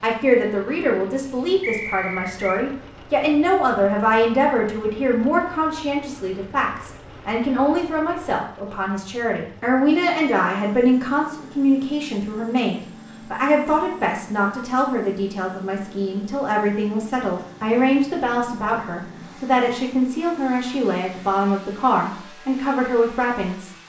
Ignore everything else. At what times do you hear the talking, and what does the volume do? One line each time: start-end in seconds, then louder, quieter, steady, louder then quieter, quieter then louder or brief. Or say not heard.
0.0-23.7 steady.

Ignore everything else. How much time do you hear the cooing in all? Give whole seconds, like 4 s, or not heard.
not heard.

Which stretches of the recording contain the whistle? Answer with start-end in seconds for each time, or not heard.
1.6-2.6.